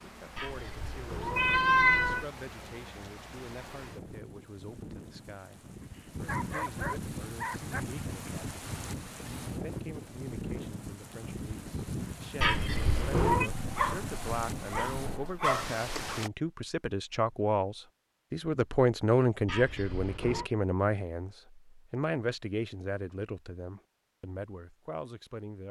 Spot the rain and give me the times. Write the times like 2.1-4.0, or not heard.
0.0-16.3.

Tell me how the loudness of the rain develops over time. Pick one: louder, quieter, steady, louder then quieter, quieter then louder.
louder.